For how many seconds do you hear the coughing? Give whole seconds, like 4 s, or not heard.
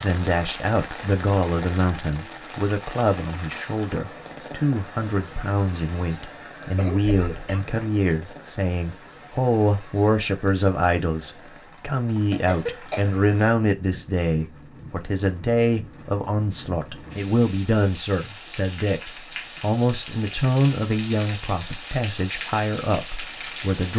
2 s.